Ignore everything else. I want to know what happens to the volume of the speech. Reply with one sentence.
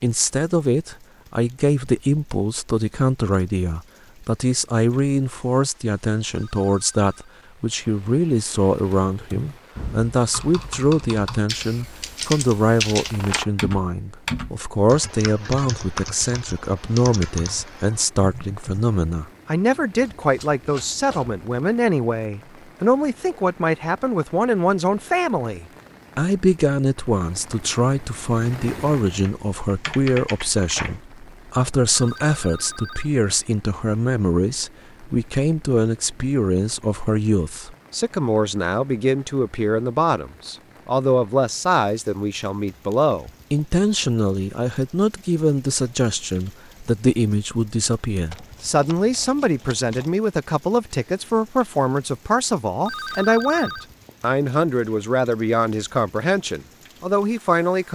The loudness of the speech stays about the same.